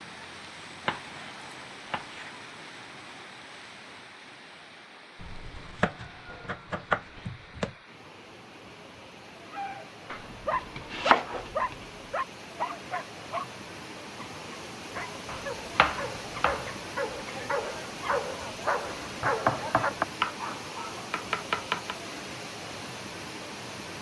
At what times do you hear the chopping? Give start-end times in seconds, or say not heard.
0.8-2.4, 5.2-7.8, 10.1-11.8, 15.2-16.6, 19.2-20.4, 21.1-21.9.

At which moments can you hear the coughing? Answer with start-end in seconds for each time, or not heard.
not heard.